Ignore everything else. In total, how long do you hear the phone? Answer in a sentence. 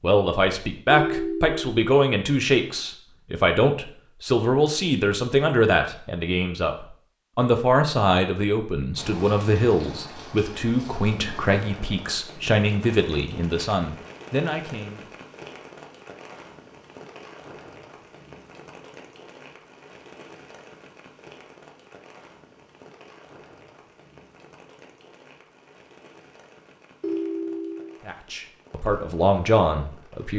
The phone can be heard for 2 seconds in total.